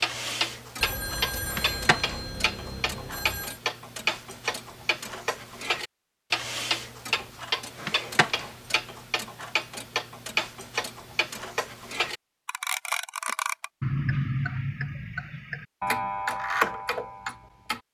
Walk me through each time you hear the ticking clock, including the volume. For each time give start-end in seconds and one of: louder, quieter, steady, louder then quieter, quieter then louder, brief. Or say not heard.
0.0-17.8 steady.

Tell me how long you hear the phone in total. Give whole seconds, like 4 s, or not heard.
3 s.